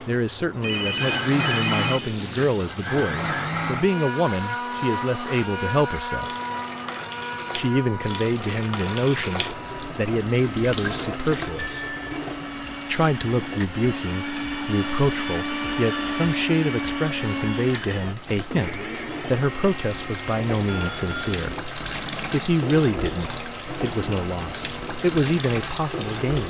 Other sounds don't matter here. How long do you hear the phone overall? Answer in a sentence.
You can hear the phone for 3 seconds altogether.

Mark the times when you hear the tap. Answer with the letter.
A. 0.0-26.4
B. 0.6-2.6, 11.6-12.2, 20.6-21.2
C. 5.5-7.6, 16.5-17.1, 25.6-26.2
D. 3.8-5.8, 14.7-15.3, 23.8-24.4
A.